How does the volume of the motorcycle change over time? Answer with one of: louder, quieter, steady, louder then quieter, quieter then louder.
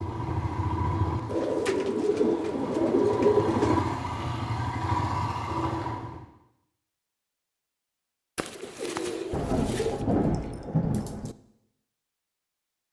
quieter then louder.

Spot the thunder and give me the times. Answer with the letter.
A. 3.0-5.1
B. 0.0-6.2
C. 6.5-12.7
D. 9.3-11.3
D.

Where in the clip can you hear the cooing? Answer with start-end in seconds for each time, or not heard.
1.2-4.0, 8.3-10.0.